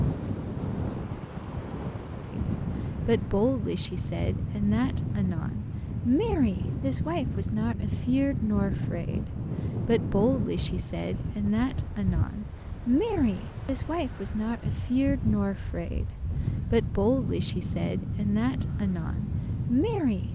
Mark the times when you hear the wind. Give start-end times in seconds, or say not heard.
0.0-20.2.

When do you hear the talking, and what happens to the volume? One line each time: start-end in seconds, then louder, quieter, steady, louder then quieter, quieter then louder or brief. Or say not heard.
2.3-20.2 steady.